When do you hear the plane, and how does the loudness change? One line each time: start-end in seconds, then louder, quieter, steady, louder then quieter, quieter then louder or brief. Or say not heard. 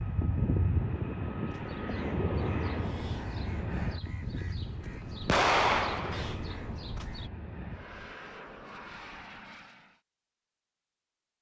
0.0-10.0 quieter.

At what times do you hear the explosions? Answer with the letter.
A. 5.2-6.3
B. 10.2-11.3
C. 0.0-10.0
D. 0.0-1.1
A.